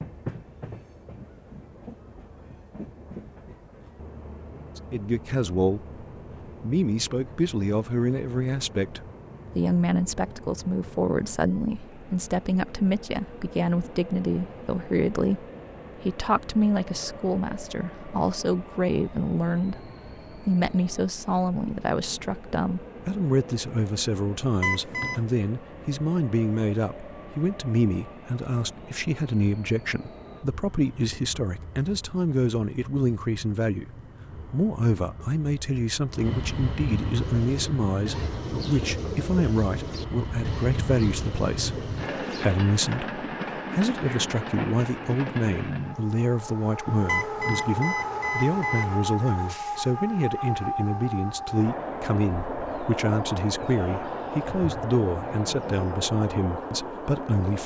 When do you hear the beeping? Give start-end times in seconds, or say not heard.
24.6-25.2, 47.0-49.0.